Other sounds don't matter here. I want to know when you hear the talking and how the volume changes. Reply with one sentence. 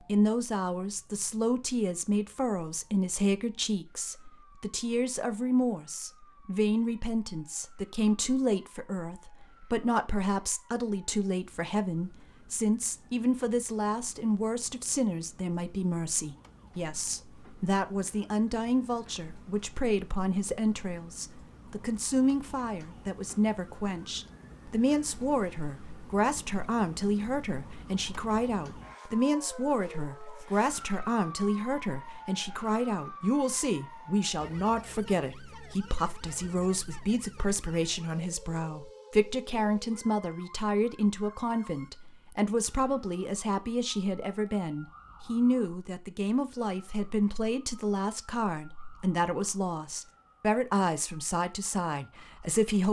You can hear the talking from 0.1 to 52.8 s, at a steady volume.